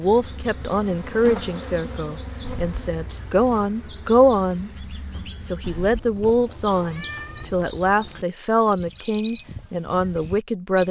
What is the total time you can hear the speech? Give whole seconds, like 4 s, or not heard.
11 s.